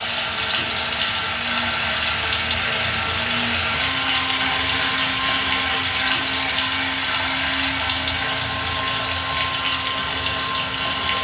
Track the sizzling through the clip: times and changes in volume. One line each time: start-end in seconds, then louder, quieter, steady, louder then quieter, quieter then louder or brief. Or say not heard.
0.0-11.1 steady.